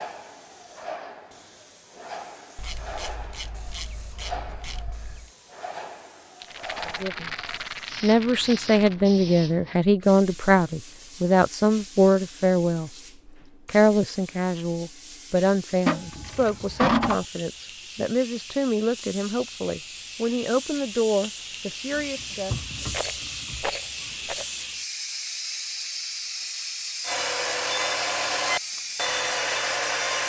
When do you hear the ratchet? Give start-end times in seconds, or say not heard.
2.5-5.3, 15.8-17.2, 21.9-24.4.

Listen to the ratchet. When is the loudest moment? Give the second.
17 s.